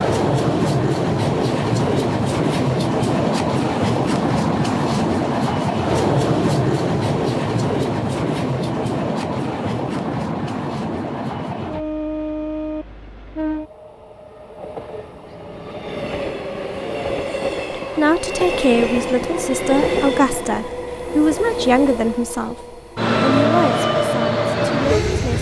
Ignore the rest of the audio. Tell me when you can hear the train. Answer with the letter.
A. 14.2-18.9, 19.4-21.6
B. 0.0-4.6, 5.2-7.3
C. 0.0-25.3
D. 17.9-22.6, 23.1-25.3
C.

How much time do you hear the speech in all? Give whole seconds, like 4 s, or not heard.
7 s.